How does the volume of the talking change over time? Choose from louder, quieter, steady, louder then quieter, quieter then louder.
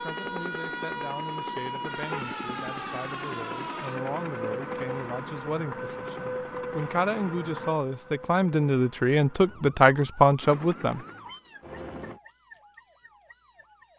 louder.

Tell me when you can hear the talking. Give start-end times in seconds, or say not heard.
0.0-11.1.